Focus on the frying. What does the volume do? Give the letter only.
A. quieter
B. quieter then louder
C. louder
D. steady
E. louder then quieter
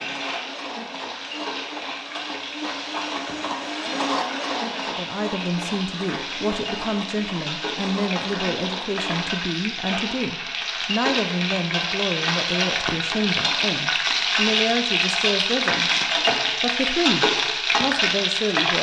C.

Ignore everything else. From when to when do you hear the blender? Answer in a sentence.
The blender can be heard from 0.0 to 9.4 s.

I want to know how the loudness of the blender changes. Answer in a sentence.
The volume of the blender goes up, then down.